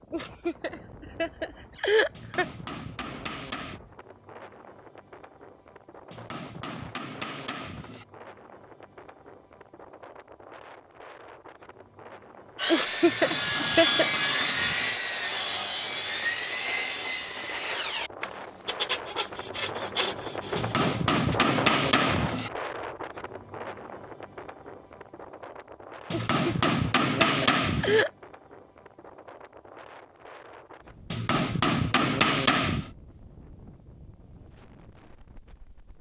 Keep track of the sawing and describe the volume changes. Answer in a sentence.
The loudness of the sawing goes down.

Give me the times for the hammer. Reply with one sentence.
The hammer can be heard from 2.1 to 3.8 s, from 6.1 to 8.1 s, from 13.0 to 14.9 s, from 20.6 to 22.5 s, from 26.1 to 28.1 s and from 31.1 to 32.9 s.